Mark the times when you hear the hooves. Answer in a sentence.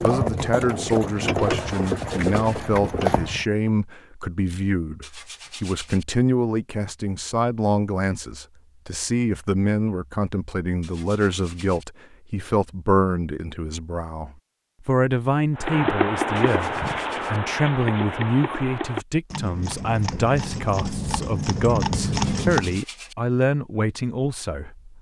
You can hear the hooves from 0.0 to 3.5 s and from 15.6 to 22.8 s.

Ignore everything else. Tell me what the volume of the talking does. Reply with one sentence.
The volume of the talking stays about the same.